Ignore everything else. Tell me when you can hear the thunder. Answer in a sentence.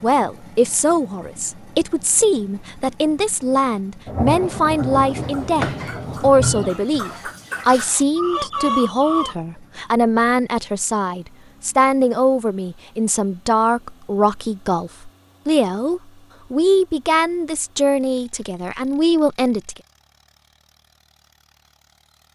You can hear the thunder from 4.0 to 6.8 s.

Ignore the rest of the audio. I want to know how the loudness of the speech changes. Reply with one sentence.
The loudness of the speech stays about the same.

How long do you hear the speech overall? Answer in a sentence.
The speech can be heard for 20 seconds in total.